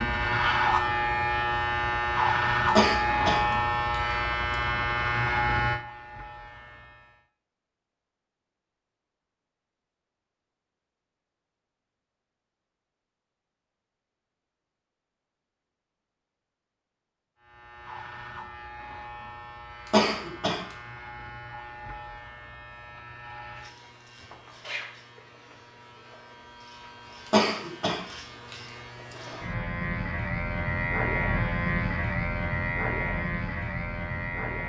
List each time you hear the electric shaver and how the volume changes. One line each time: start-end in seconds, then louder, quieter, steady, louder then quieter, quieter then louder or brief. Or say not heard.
0.0-7.2 quieter
17.4-34.6 louder.